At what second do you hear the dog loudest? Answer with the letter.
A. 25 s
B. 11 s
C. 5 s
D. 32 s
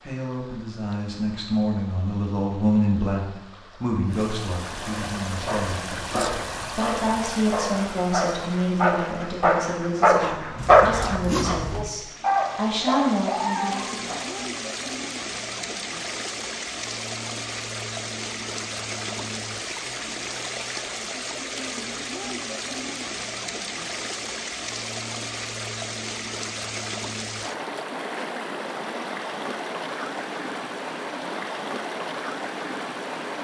B.